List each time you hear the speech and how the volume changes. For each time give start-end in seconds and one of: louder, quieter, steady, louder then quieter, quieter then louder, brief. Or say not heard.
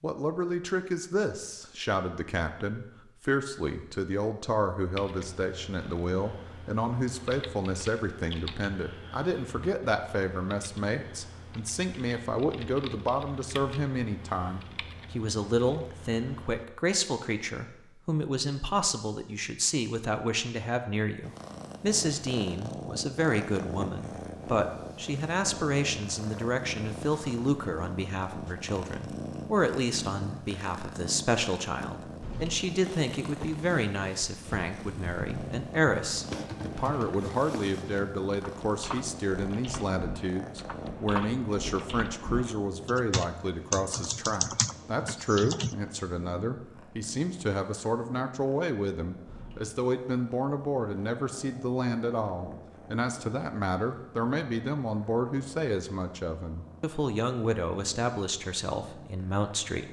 0.0-59.8 steady.